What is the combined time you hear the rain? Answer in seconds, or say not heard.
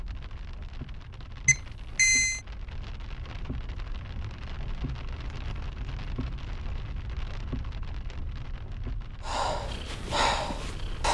11 s.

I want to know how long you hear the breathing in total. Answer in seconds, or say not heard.
2 s.